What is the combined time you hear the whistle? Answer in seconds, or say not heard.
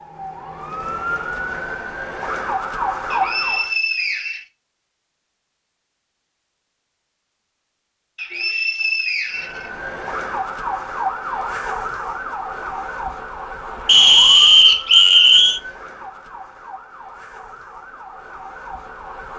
5 s.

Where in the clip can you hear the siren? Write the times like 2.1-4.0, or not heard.
0.0-3.7, 9.3-19.3.